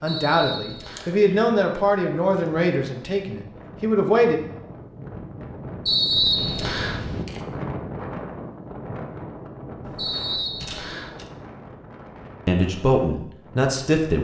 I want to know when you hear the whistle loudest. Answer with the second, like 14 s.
6 s.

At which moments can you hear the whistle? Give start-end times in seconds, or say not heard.
0.1-1.1, 5.8-7.0, 9.9-11.1.